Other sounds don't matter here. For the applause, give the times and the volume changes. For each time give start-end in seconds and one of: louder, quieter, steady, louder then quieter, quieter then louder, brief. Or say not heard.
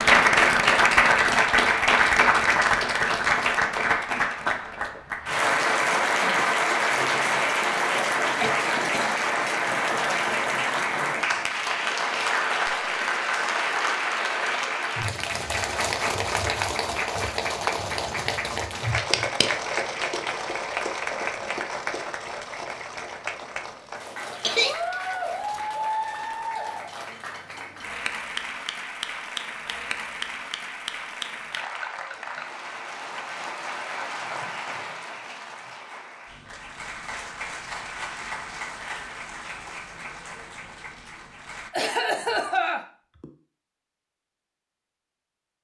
0.0-41.7 quieter.